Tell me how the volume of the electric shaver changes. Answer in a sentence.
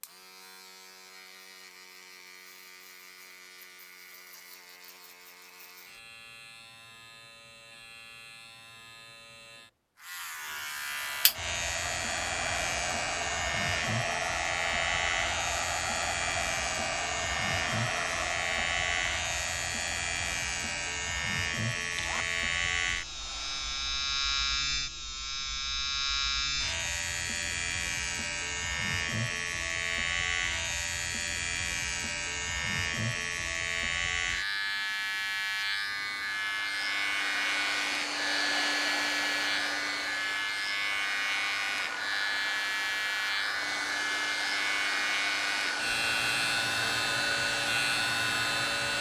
The loudness of the electric shaver goes up.